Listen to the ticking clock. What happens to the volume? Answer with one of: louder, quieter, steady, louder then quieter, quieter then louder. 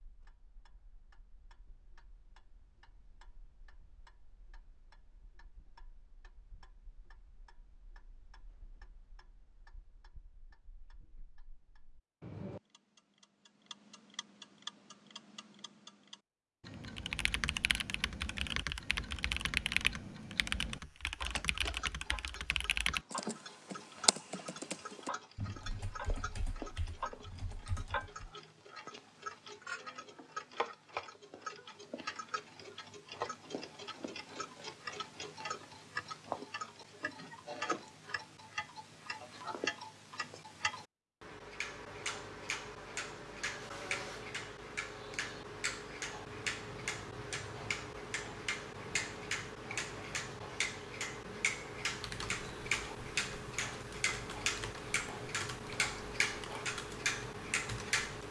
louder.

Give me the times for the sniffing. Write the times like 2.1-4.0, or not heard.
not heard.